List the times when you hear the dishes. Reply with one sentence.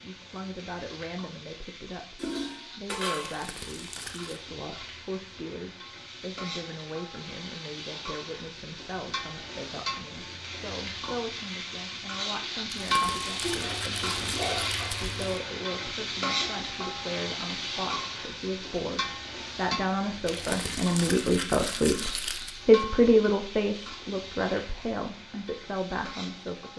You can hear the dishes from 2.1 to 3.5 s and from 13.4 to 15.3 s.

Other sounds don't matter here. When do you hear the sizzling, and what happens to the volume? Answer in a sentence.
The sizzling can be heard from 0.0 to 26.7 s, getting louder then quieter.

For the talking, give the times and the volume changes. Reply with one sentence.
The talking can be heard from 0.0 to 26.7 s, getting louder.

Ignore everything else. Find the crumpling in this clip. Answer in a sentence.
You can hear the crumpling from 3.2 to 4.4 s, from 12.7 to 15.2 s and from 20.2 to 22.6 s.